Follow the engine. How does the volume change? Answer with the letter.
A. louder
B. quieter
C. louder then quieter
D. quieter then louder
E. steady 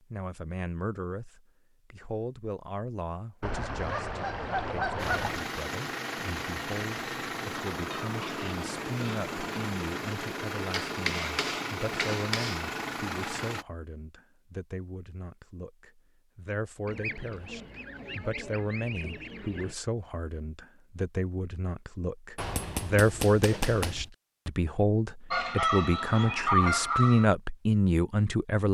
E.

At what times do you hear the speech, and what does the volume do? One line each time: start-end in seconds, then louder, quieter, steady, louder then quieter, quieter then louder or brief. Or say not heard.
0.0-28.7 louder.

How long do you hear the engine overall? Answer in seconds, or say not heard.
9 s.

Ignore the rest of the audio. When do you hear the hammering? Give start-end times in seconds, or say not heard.
10.7-12.7, 22.4-24.1.